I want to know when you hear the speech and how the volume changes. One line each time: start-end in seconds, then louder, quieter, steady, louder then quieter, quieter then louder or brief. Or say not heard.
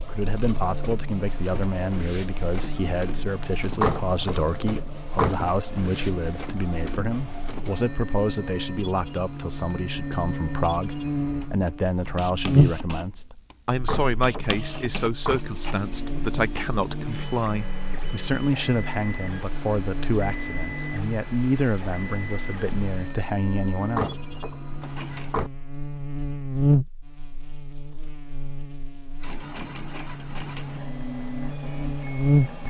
0.0-24.1 steady.